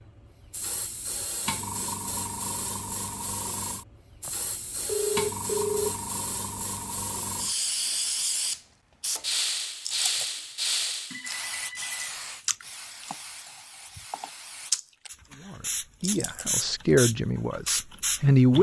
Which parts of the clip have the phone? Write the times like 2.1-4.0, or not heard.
4.2-6.0, 11.1-11.9.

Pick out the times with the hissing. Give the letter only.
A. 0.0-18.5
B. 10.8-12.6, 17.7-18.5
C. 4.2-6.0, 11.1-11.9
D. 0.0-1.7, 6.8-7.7
A.